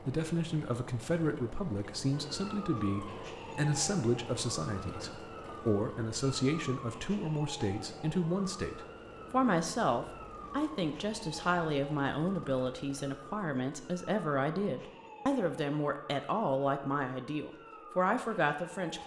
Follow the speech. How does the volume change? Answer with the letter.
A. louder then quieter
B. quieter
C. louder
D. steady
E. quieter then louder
D.